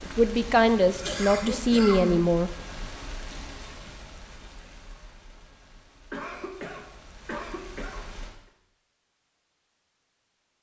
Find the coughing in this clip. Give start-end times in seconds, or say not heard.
0.8-2.2, 6.1-8.1.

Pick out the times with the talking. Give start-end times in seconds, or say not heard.
0.1-2.5.